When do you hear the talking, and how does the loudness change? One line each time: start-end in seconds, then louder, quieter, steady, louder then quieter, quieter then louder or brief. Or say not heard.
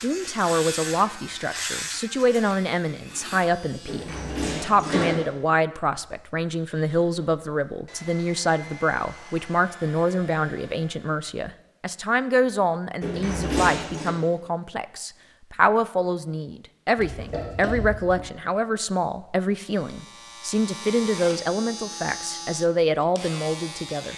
0.0-24.1 steady.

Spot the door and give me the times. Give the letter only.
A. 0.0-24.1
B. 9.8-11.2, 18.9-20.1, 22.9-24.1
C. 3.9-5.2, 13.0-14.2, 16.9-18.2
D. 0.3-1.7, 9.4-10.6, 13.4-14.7
C.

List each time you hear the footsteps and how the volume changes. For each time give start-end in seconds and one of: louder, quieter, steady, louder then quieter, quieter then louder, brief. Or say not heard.
not heard.